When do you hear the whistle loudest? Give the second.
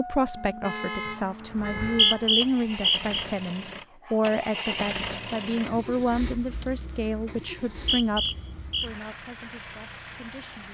2 s.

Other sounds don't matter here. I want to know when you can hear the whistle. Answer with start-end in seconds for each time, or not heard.
1.8-3.2, 7.5-8.9.